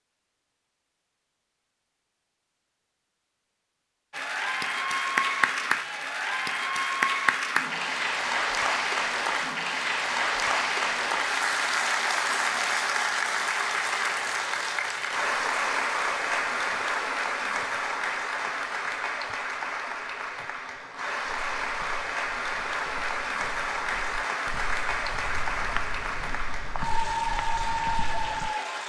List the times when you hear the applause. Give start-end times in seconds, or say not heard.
4.1-28.8.